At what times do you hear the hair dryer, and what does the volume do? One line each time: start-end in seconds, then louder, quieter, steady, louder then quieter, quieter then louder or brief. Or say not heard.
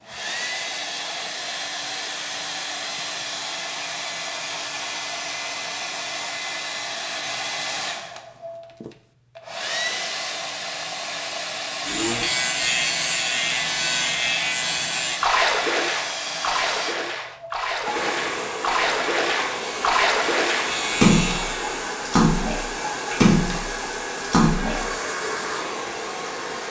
0.0-26.6 steady.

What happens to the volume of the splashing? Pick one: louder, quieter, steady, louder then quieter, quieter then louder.
louder.